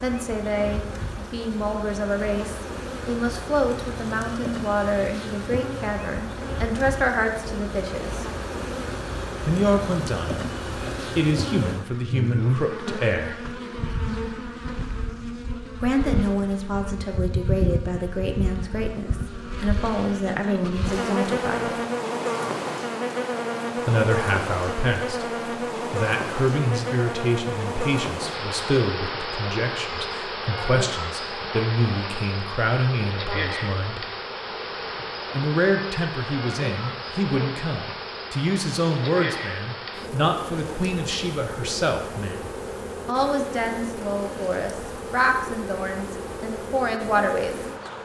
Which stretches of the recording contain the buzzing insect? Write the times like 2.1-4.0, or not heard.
0.0-48.0.